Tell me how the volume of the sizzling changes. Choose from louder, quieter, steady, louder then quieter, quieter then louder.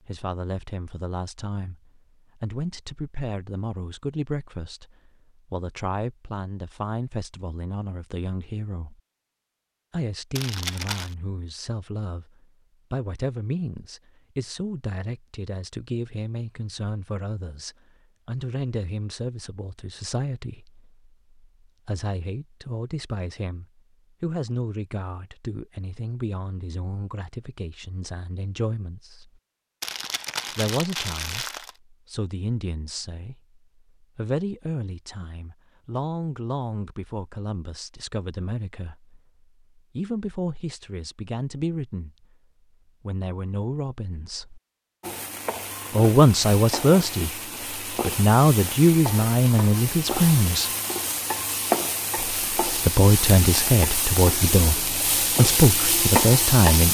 louder.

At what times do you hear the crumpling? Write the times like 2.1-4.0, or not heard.
10.3-11.2, 29.8-31.8.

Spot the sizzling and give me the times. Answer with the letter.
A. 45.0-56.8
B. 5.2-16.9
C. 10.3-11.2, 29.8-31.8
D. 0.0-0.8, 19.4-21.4
A.